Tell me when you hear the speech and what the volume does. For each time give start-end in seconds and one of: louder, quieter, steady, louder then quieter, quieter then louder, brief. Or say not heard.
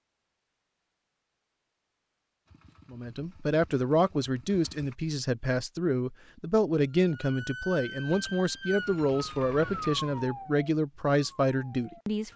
2.9-12.3 steady.